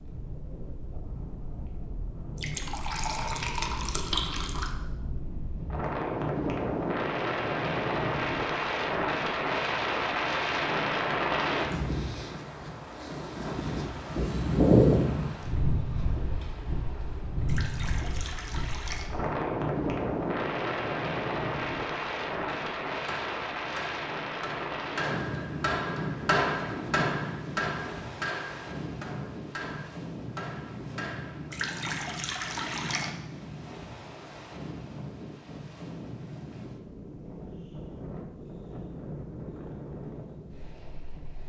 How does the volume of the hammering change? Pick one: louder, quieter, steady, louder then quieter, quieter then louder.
louder then quieter.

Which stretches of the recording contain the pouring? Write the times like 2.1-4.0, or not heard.
2.4-4.8, 17.4-19.1, 31.5-33.1.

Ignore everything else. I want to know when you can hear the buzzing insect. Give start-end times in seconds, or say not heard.
not heard.